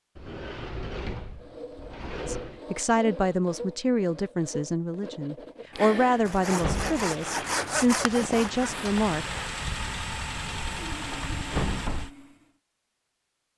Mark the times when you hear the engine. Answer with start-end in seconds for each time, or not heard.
6.7-12.1.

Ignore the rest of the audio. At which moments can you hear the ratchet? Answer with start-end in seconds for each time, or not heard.
not heard.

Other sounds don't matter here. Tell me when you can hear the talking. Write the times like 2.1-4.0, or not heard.
2.2-9.3.